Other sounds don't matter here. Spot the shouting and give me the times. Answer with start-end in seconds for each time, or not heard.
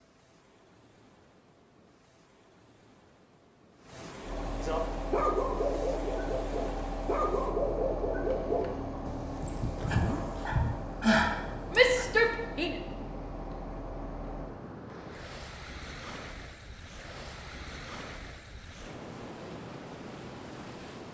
11.7-12.8.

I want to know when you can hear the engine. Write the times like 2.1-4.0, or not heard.
4.2-14.5.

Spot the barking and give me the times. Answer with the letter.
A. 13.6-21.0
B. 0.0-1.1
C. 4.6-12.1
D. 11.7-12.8
C.